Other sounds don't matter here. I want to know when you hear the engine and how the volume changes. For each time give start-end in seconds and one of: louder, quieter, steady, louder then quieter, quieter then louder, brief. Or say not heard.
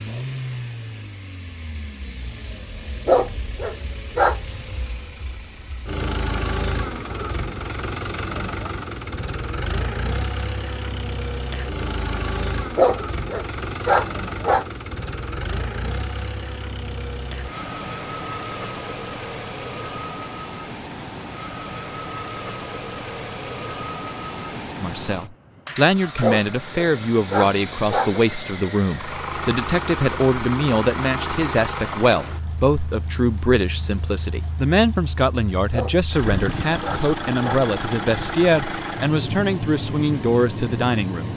0.0-41.3 steady.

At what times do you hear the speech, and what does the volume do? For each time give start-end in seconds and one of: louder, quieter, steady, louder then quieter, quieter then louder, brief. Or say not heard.
24.8-41.3 steady.